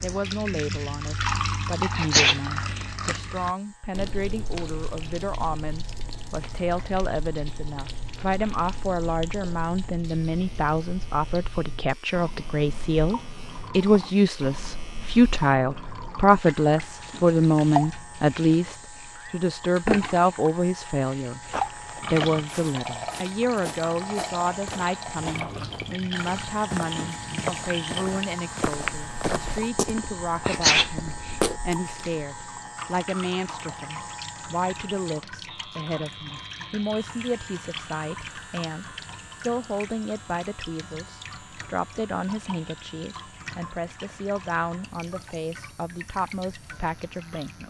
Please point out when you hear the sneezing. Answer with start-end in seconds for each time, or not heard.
1.9-2.4, 30.4-30.9.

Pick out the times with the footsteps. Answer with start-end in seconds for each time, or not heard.
21.4-32.1.